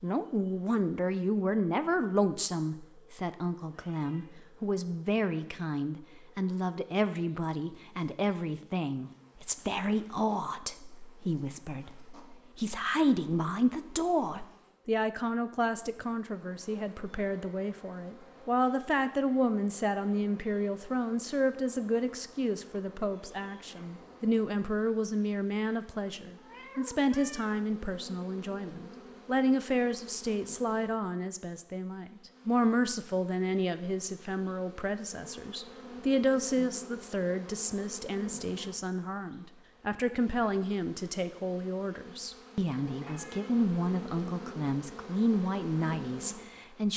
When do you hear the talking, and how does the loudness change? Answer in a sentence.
You can hear the talking from 0.0 to 46.9 s, at a steady volume.